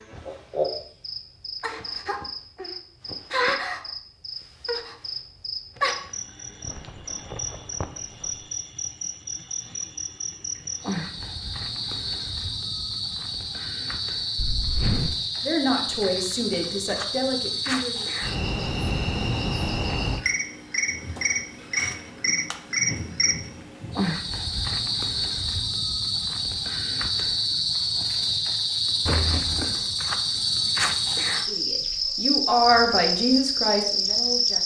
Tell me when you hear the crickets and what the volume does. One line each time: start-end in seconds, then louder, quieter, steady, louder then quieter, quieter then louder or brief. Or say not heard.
0.0-34.6 louder.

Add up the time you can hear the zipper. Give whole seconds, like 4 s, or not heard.
3 s.